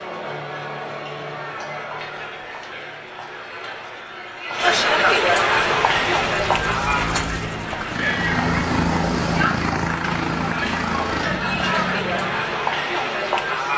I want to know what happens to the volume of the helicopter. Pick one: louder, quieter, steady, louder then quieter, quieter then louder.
louder then quieter.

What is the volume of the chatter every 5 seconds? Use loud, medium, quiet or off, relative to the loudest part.
medium, loud, loud.